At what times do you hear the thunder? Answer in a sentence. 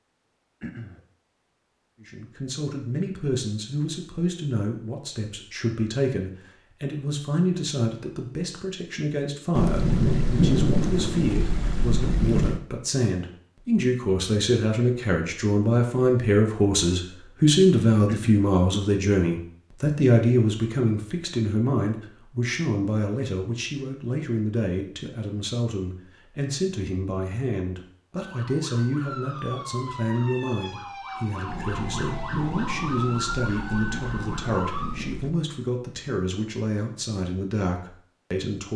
You can hear the thunder from 9.6 to 12.6 s and from 31.4 to 35.3 s.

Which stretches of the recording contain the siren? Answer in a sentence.
You can hear the siren from 28.2 to 34.9 s.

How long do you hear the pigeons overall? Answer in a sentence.
The pigeons can't be heard in this clip.